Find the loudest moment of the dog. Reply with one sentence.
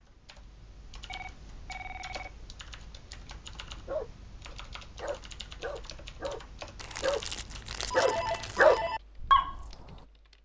The volume of the dog peaks at 9 seconds.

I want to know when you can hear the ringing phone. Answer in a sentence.
You can hear the ringing phone from 1.1 to 2.3 s and from 7.8 to 9.0 s.